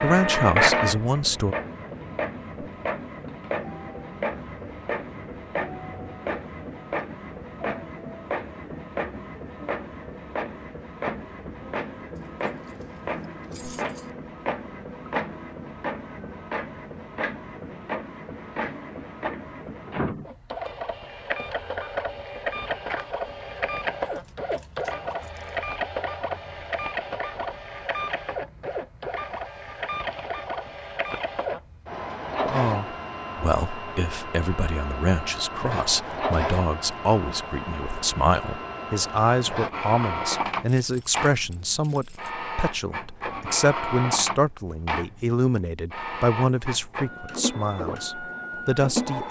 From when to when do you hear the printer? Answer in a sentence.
You can hear the printer from 0.0 to 49.2 s.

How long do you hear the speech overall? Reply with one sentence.
You can hear the speech for 18 seconds altogether.